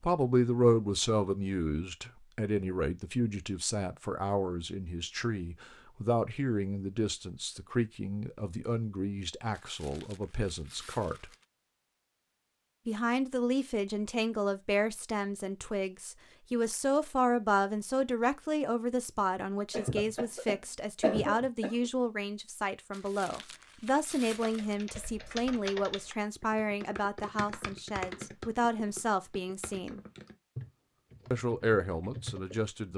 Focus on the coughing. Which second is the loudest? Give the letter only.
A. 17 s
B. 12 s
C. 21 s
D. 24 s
C.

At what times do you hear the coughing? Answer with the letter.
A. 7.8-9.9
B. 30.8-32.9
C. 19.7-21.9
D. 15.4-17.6
C.